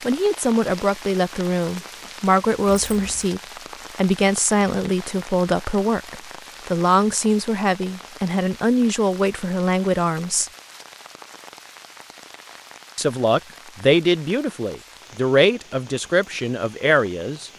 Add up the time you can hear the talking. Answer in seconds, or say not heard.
15 s.